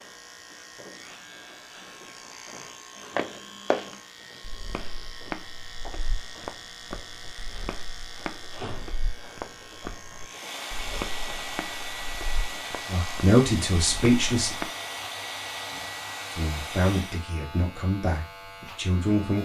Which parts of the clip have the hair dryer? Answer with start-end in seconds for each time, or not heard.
10.2-17.2.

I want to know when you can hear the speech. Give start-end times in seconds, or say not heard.
12.8-14.6, 16.3-19.4.